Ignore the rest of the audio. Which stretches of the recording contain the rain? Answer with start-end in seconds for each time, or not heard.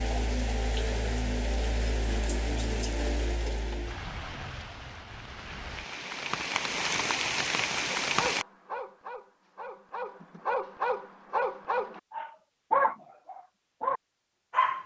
0.0-8.4.